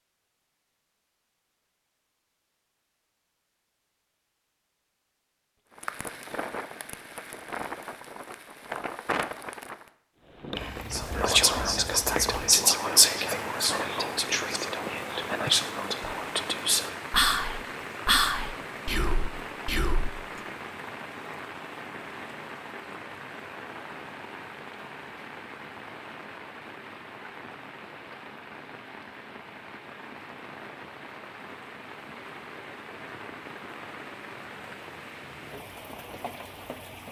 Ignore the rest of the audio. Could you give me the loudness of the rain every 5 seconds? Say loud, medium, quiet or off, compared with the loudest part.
off, loud, loud, loud, loud, medium, medium, medium.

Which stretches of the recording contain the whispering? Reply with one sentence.
The whispering can be heard from 10.9 to 20.1 s.